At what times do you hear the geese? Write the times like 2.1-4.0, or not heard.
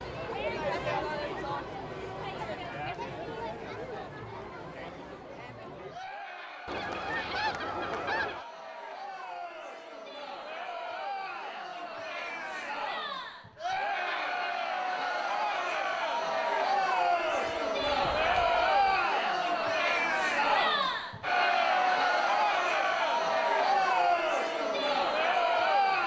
6.7-8.4, 17.2-18.9.